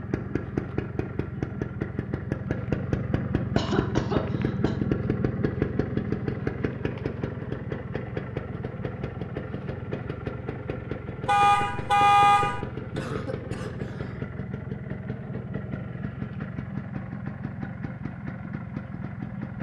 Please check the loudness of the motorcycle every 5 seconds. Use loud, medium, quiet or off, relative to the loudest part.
loud, loud, medium, medium.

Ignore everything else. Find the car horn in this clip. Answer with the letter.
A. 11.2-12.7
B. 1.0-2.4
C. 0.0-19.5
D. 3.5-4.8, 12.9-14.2
A.